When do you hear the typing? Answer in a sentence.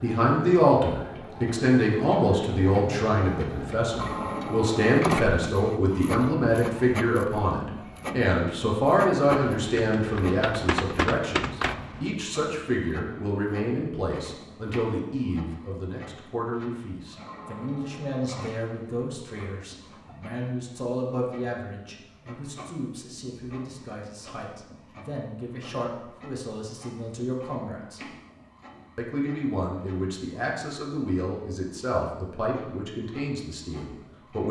The typing can be heard from 9.6 to 12.1 s.